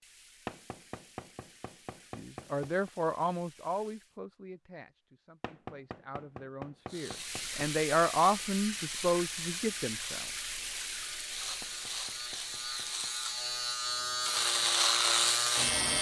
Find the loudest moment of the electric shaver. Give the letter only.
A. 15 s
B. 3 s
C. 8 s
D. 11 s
A.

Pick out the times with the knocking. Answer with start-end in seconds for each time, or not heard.
0.5-2.9, 5.4-7.7, 11.6-13.2.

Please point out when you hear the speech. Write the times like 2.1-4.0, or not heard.
2.1-10.2.